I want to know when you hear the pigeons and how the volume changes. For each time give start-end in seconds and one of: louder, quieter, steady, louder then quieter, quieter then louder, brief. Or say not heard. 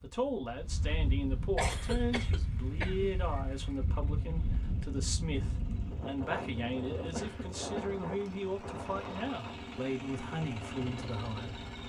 not heard.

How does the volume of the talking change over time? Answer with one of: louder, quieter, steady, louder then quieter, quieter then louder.
steady.